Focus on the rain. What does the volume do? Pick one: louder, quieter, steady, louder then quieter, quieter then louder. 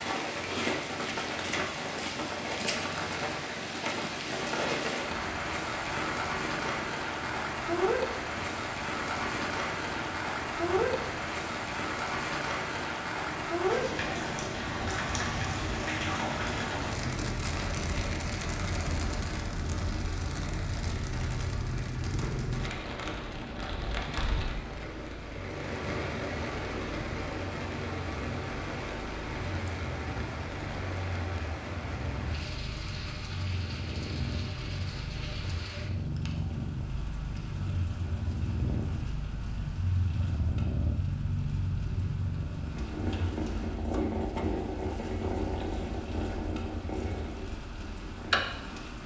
quieter.